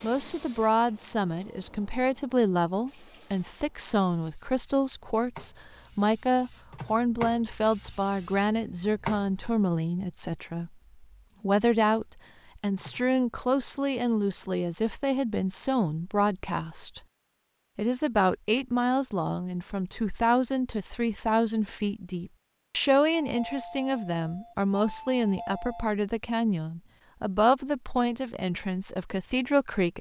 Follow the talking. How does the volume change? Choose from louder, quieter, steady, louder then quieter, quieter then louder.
steady.